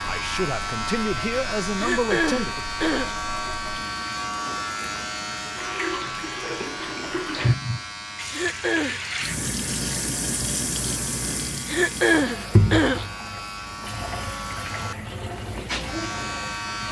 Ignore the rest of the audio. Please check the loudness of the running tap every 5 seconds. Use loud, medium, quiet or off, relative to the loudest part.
quiet, loud, loud, medium.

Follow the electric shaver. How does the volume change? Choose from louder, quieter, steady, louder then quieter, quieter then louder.
quieter then louder.